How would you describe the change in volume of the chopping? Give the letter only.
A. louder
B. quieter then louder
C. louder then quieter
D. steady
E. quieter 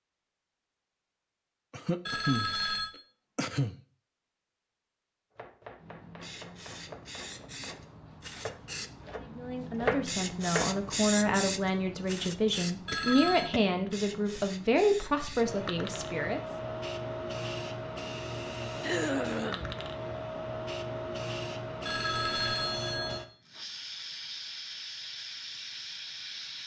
A.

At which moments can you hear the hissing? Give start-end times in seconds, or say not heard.
5.8-26.6.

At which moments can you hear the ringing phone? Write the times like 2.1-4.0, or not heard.
2.0-2.9, 12.8-13.5, 21.9-23.2.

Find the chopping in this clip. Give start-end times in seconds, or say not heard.
5.3-10.8.